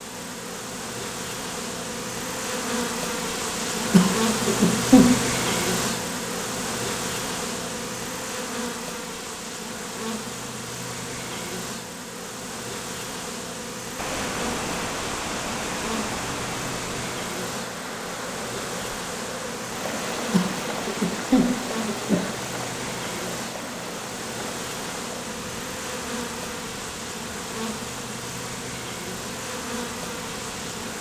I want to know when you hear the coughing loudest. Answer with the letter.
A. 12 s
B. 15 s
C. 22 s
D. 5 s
D.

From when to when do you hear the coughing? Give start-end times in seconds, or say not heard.
3.9-5.1, 20.3-22.3.